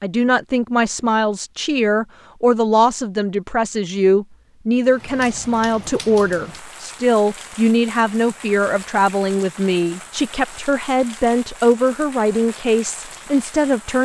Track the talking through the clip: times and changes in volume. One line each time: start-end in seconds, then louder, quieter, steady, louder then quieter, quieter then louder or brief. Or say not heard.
0.0-14.0 steady.